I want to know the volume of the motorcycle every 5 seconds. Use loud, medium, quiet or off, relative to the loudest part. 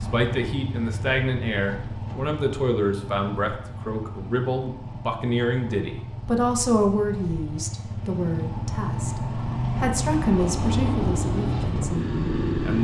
medium, medium, loud.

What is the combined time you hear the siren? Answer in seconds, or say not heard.
not heard.